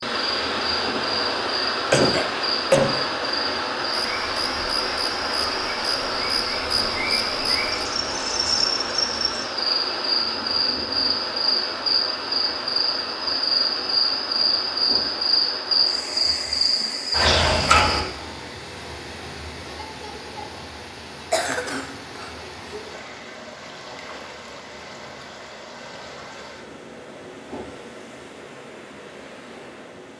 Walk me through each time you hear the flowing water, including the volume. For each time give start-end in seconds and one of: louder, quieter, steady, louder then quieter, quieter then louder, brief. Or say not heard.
0.0-30.1 quieter.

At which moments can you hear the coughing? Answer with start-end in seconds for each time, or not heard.
1.9-3.0, 16.8-17.8, 21.3-22.3.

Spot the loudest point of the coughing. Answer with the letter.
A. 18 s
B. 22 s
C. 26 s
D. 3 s
D.